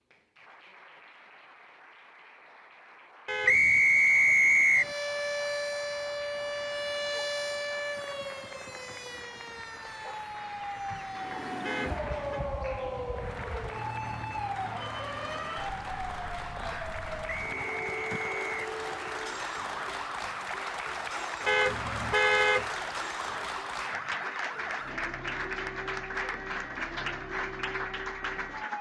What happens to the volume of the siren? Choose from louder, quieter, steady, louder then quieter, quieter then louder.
quieter.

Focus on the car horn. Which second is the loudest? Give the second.
22 s.